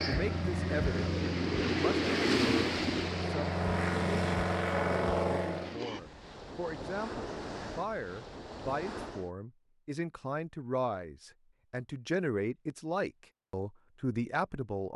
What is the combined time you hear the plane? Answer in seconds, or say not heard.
6 s.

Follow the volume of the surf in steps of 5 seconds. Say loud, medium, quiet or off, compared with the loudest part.
loud, medium, off.